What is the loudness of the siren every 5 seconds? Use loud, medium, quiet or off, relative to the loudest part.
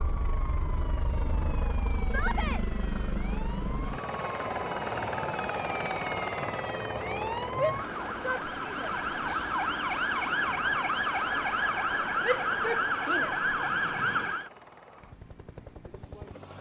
quiet, medium, loud, off.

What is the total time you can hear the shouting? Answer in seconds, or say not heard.
3 s.